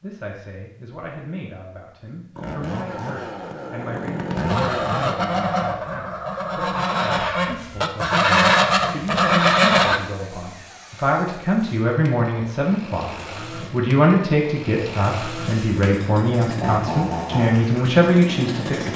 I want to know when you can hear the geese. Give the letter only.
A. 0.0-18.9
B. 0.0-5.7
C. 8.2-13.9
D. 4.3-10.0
D.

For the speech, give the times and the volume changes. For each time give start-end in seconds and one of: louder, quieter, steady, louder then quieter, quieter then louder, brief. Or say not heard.
0.0-18.9 louder.